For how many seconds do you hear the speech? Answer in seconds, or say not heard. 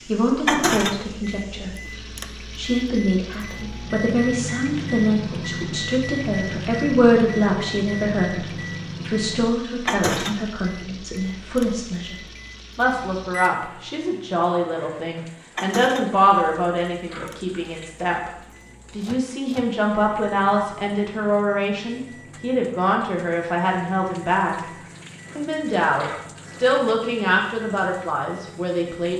27 s.